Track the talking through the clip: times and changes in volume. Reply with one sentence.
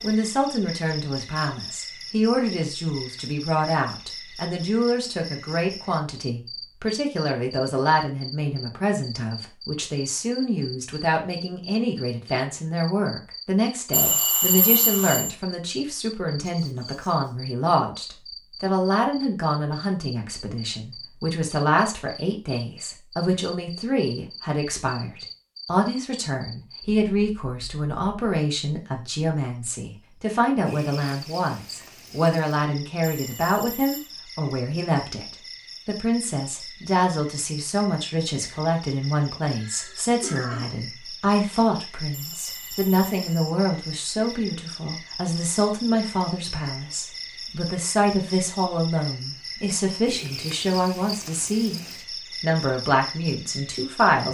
You can hear the talking from 0.0 to 54.2 s, at a steady volume.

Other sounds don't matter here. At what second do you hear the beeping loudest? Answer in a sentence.
The volume of the beeping peaks at 14 seconds.